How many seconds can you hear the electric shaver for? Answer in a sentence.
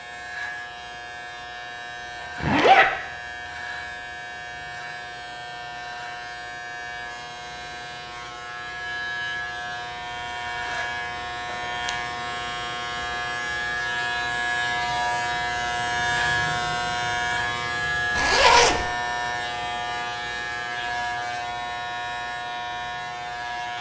You can hear the electric shaver for 24 seconds altogether.